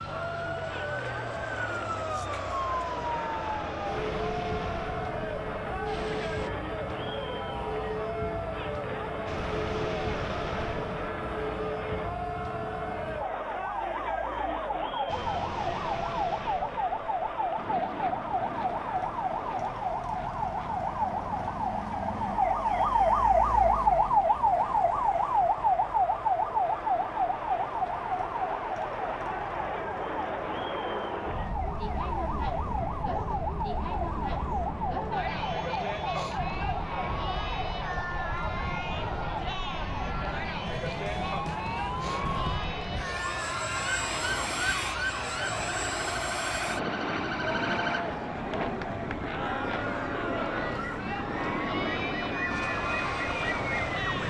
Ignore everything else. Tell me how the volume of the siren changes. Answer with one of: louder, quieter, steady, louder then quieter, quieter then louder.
louder then quieter.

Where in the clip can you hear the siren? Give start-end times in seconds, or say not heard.
0.0-54.2.